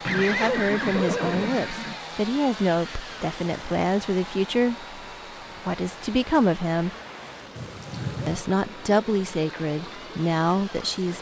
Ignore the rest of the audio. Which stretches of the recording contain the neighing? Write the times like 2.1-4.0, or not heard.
0.1-2.0, 7.5-8.4.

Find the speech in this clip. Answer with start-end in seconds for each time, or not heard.
0.1-4.8, 5.7-6.9, 8.2-11.1.